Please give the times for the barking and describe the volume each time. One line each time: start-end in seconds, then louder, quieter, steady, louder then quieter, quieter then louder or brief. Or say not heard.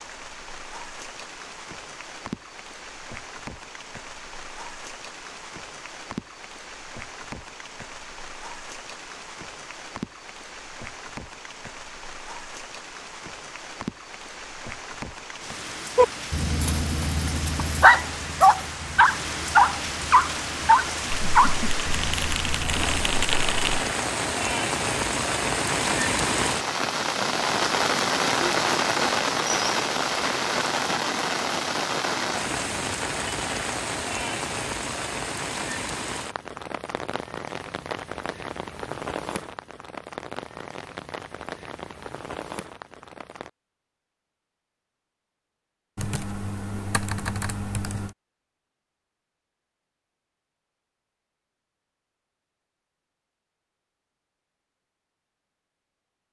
15.9-23.1 louder then quieter.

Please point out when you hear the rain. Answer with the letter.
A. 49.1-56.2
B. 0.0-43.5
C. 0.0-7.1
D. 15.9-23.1
B.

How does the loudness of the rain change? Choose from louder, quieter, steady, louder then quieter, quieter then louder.
louder then quieter.